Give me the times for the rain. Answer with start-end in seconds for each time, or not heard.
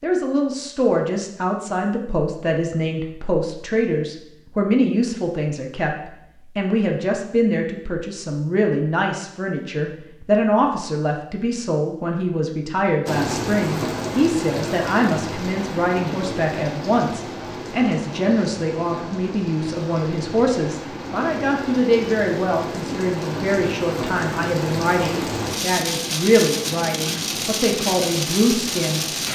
13.1-29.3.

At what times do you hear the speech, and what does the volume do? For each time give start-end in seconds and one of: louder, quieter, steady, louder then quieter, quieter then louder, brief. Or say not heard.
0.0-29.1 steady.